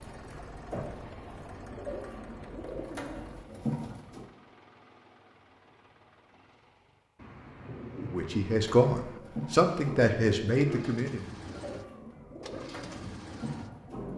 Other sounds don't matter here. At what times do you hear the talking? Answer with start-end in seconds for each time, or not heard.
8.0-11.2.